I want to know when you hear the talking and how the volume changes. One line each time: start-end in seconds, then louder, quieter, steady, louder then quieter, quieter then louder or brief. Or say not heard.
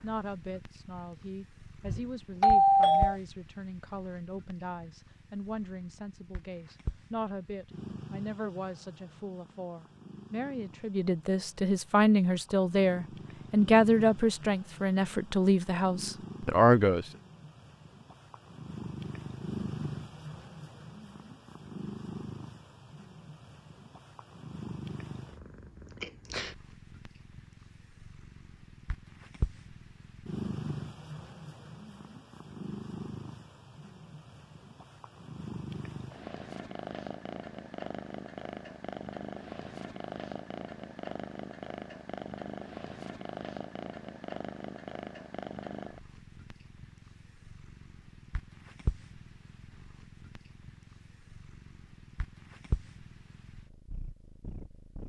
0.0-17.1 louder.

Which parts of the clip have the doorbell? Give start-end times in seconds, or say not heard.
1.9-3.1.